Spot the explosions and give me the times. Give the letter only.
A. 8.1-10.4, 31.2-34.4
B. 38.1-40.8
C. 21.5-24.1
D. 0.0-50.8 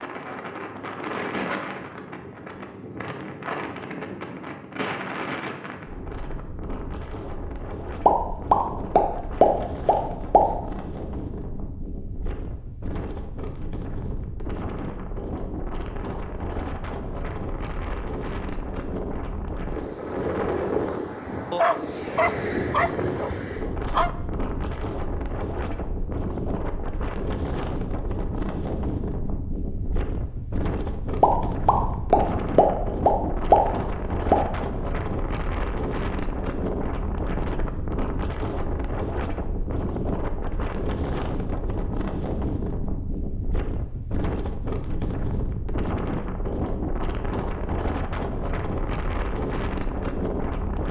A.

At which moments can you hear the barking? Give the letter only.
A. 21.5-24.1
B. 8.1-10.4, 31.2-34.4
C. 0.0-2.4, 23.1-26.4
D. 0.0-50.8
A.